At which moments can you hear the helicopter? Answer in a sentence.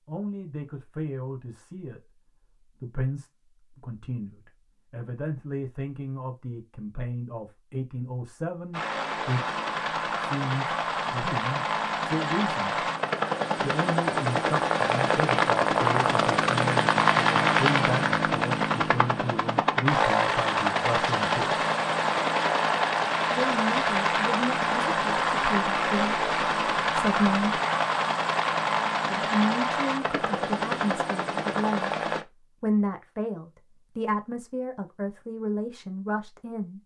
You can hear the helicopter from 8.7 to 32.2 s.